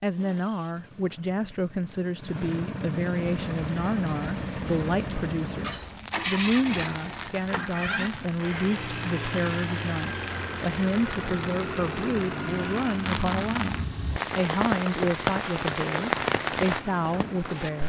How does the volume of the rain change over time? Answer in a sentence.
The volume of the rain goes up.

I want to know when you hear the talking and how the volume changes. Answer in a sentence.
The talking can be heard from 0.0 to 17.8 s, at a steady volume.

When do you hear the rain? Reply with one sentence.
You can hear the rain from 3.2 to 17.8 s.